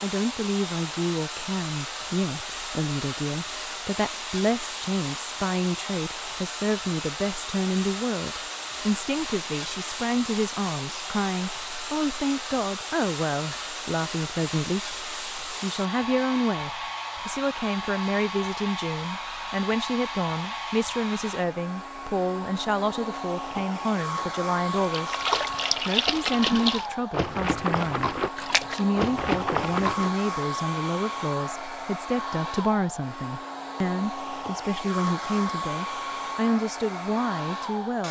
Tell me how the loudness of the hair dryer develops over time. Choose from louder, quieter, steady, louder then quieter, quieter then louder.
steady.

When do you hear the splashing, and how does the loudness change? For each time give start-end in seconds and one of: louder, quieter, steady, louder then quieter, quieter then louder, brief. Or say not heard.
24.9-30.1 steady.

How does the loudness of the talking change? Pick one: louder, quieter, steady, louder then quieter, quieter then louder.
steady.